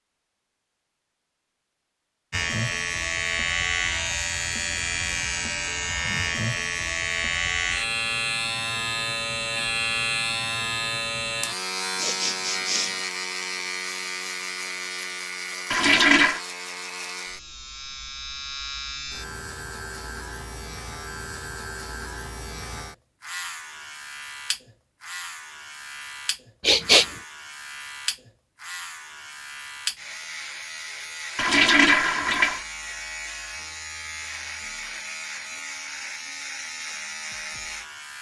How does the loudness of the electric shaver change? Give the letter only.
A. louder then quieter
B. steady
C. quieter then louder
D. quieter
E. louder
D.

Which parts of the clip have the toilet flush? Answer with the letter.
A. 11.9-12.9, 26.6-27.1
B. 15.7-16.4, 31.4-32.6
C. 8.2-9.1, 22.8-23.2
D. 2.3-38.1
B.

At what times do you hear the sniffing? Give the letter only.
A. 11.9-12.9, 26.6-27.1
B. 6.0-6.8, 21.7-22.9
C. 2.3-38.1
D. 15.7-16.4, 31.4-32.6
A.